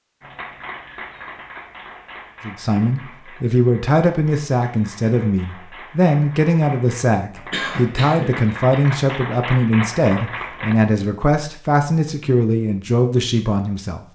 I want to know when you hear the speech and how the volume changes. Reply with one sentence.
The speech can be heard from 2.5 to 14.1 s, at a steady volume.